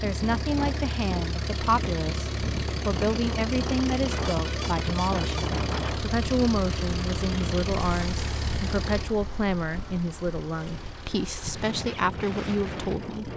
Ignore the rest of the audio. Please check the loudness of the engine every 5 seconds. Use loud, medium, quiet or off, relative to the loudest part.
loud, loud, quiet.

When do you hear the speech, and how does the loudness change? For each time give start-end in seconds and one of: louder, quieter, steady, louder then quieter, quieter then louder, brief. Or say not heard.
0.0-13.3 steady.